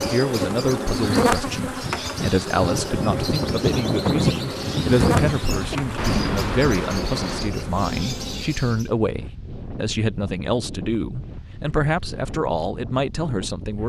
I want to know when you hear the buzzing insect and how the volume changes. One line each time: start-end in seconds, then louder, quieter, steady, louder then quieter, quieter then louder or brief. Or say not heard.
0.0-8.7 quieter.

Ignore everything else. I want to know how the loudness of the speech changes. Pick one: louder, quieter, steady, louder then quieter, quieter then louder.
steady.